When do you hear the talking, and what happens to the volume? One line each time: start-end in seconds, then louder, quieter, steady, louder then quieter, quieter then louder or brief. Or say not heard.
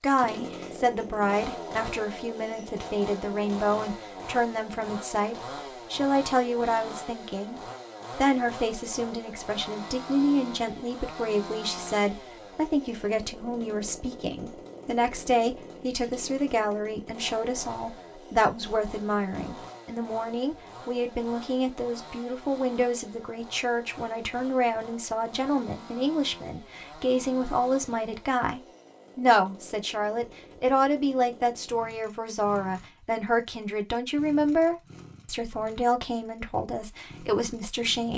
0.0-38.1 steady.